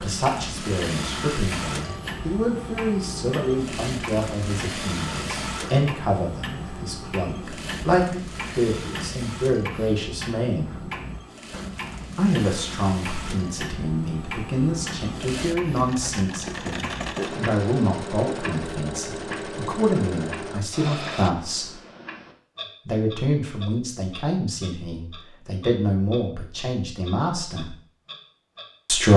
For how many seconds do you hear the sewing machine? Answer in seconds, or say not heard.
21 s.